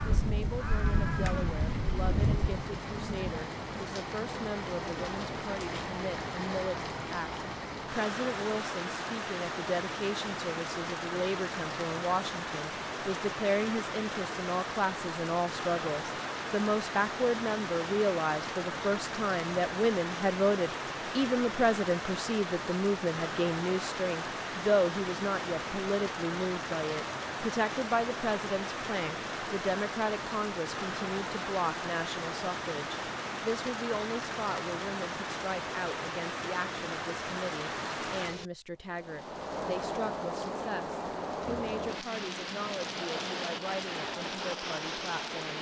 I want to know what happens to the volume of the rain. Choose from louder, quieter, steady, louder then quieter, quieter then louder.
steady.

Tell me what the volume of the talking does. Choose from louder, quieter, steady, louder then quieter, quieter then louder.
louder then quieter.